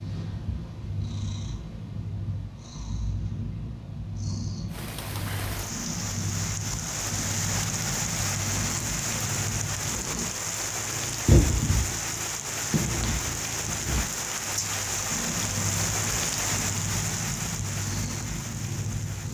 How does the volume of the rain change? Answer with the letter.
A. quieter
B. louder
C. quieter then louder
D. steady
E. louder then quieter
D.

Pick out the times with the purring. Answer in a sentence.
The purring can be heard from 0.0 to 19.2 s.